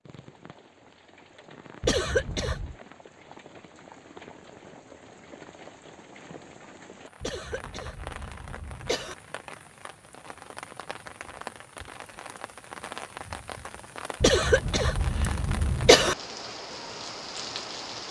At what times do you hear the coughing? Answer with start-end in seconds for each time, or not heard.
1.8-2.8, 7.2-9.2, 14.2-16.1.